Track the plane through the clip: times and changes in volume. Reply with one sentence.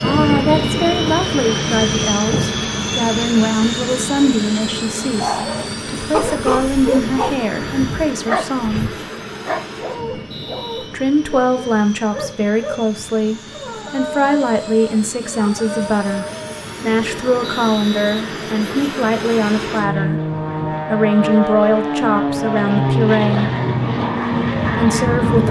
The plane can be heard from 0.0 to 25.4 s, getting quieter then louder.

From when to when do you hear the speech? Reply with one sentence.
You can hear the speech from 0.0 to 8.9 s, from 10.9 to 23.5 s and from 24.8 to 25.4 s.